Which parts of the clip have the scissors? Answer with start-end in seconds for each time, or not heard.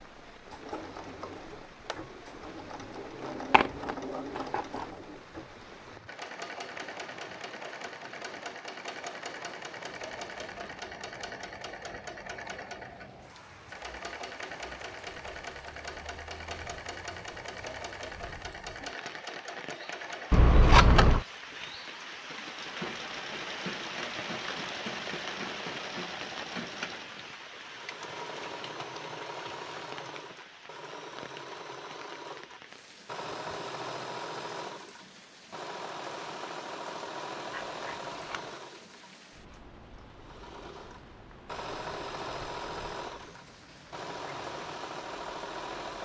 3.4-4.8, 20.3-21.2, 37.5-38.5.